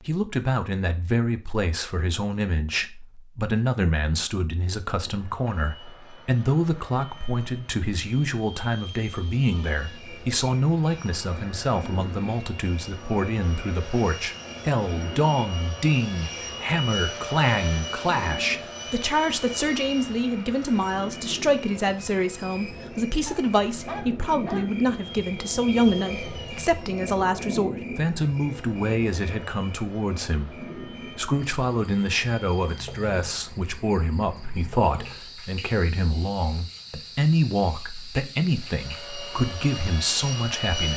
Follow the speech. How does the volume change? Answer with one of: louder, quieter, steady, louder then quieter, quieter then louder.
steady.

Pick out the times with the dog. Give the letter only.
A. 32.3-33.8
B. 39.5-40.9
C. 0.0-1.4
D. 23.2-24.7
D.